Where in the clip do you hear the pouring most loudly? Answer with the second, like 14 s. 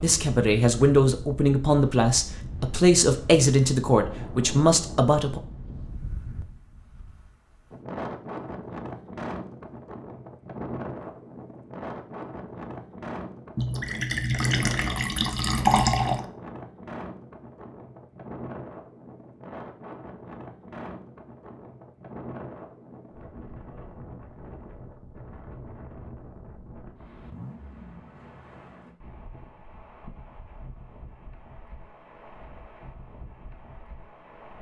16 s.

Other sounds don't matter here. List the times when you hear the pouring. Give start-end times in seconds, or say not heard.
13.6-16.2.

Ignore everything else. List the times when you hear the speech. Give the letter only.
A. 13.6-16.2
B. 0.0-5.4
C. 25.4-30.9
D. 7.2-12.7
B.